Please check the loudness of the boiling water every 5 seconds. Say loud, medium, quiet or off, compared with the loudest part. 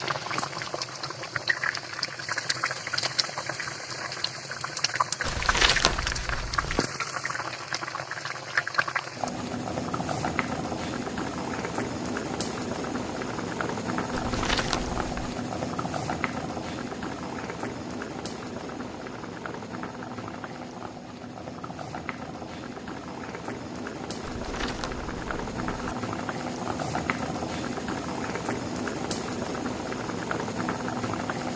loud, loud, loud, loud, medium, loud, loud.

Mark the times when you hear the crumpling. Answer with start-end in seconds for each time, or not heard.
5.2-6.8, 14.1-15.3, 24.2-25.9.